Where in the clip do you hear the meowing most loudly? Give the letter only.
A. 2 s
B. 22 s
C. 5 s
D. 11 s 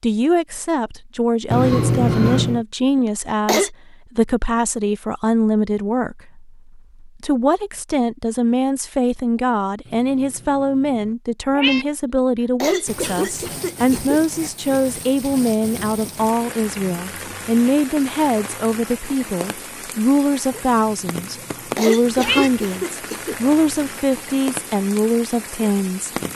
A.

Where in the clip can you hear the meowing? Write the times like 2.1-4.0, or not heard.
1.5-2.6, 9.8-11.8, 20.5-22.5.